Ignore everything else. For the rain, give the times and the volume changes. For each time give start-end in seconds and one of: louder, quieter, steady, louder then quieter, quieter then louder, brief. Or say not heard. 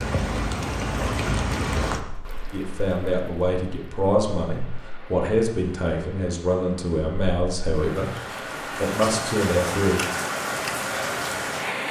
0.0-11.8 quieter then louder.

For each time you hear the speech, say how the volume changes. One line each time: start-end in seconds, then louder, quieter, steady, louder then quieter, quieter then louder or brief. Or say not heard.
2.5-10.0 steady.